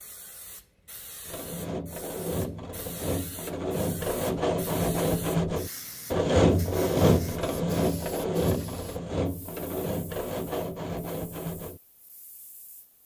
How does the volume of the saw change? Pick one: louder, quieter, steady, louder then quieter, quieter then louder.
louder then quieter.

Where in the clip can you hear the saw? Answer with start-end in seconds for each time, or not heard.
1.2-11.8.